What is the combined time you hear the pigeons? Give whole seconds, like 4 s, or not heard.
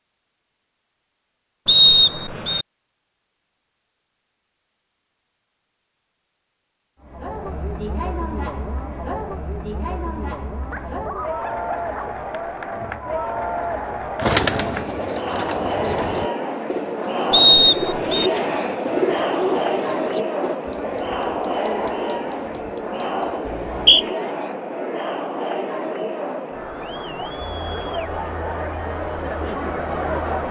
6 s.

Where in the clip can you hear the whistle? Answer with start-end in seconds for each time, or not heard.
1.6-2.6, 17.3-18.3, 23.4-24.1.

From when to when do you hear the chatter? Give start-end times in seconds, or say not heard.
7.0-30.4.